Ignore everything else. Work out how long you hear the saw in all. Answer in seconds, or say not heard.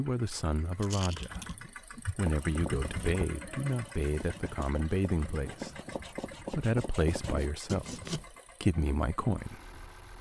6 s.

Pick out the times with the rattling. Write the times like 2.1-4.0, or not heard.
0.8-1.6.